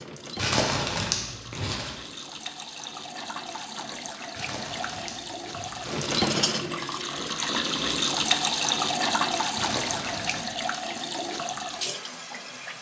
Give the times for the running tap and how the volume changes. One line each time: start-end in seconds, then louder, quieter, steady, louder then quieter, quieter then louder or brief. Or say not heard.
0.0-12.7 louder then quieter.